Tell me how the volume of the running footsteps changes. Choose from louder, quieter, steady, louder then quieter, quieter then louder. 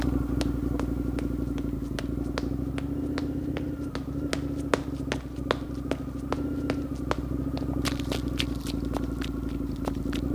louder then quieter.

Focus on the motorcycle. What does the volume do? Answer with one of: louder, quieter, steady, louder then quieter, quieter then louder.
steady.